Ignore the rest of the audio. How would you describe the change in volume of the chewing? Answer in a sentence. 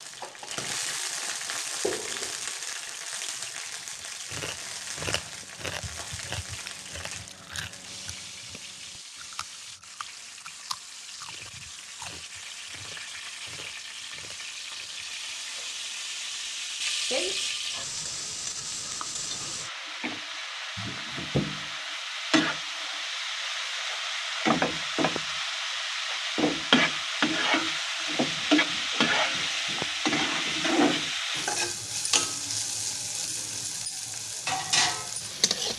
The loudness of the chewing goes down.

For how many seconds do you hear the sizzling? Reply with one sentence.
The sizzling can be heard for 36 seconds in total.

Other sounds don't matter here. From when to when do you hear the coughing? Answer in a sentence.
You can't hear the coughing here.